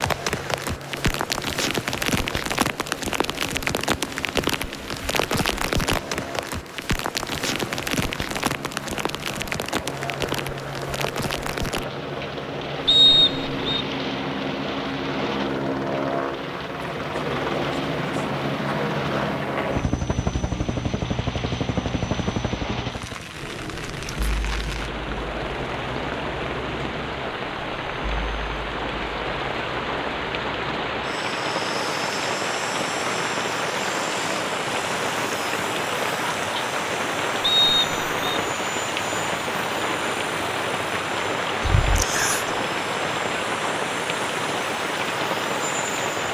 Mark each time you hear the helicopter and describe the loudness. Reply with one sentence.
The helicopter can be heard from 0.0 to 46.2 s, getting louder then quieter.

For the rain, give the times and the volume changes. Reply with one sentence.
The rain can be heard from 0.0 to 46.2 s, getting quieter then louder.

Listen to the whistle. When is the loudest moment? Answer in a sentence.
The loudest moment of the whistle is at 13 seconds.